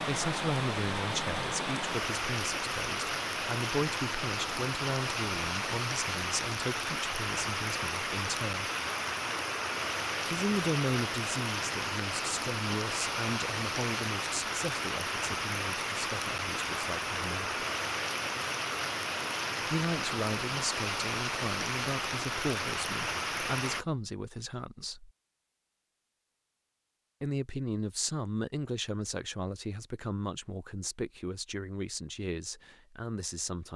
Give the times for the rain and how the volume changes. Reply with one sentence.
The rain can be heard from 0.0 to 23.9 s, at a steady volume.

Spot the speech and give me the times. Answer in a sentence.
You can hear the speech from 0.0 to 8.7 s, from 10.2 to 17.6 s, from 19.6 to 25.1 s and from 27.2 to 33.7 s.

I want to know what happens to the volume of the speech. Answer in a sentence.
The loudness of the speech stays about the same.